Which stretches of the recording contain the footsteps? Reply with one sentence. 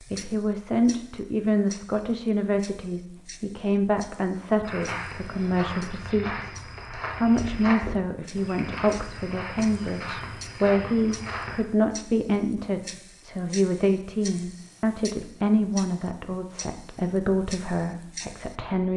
The footsteps can be heard from 4.6 to 11.7 s.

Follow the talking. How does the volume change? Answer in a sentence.
The loudness of the talking stays about the same.